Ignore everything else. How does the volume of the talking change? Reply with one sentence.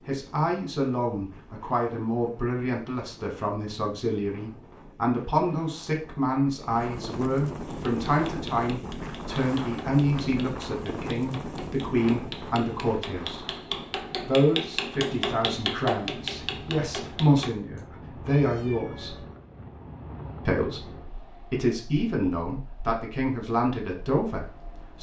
The loudness of the talking stays about the same.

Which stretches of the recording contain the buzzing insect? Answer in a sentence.
You can't hear the buzzing insect here.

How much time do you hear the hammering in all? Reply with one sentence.
The hammering can be heard for 10 seconds in total.